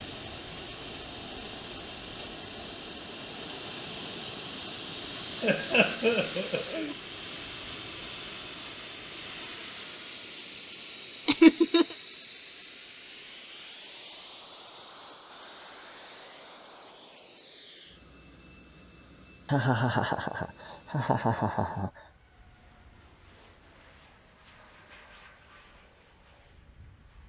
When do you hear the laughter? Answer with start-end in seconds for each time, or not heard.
5.4-7.0, 11.2-11.9, 19.4-22.0.